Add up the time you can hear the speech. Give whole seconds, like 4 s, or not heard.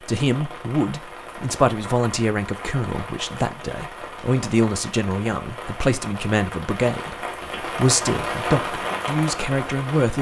10 s.